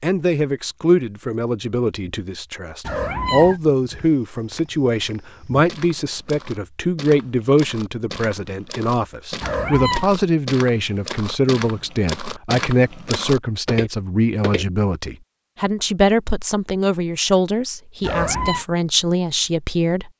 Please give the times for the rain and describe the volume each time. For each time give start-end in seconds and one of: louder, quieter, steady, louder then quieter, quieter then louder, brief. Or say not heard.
not heard.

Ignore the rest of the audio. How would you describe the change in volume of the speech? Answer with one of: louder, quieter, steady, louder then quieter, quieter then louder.
steady.